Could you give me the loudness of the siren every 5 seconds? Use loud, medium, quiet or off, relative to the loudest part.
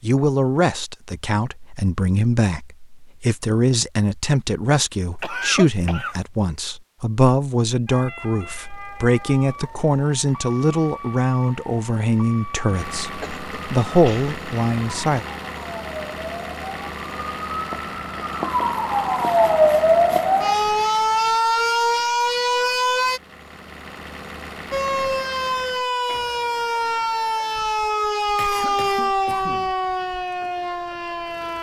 off, quiet, quiet, loud, loud, loud, medium.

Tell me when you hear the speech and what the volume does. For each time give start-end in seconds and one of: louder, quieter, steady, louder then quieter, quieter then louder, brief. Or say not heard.
0.0-15.2 steady.